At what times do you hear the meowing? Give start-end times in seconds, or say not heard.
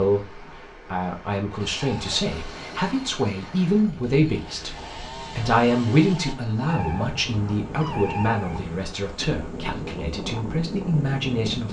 1.9-3.1, 6.7-8.7.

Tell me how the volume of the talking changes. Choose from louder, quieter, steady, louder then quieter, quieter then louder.
louder then quieter.